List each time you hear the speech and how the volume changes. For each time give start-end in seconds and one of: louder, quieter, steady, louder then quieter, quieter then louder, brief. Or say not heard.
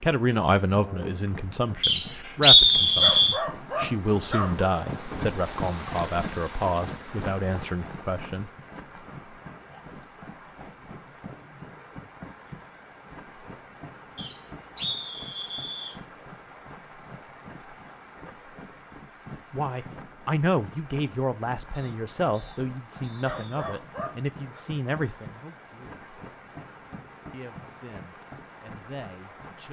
0.0-8.5 steady
19.5-26.1 quieter
27.3-29.6 brief.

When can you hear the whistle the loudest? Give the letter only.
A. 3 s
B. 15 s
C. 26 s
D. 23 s
A.